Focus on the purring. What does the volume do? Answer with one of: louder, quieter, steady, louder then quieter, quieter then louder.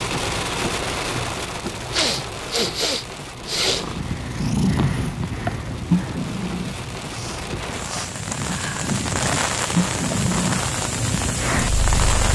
quieter then louder.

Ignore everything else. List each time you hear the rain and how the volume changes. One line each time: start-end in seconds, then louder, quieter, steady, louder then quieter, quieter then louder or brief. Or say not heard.
0.0-12.2 quieter then louder.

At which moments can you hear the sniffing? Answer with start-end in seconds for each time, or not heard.
1.9-3.9, 7.1-8.8.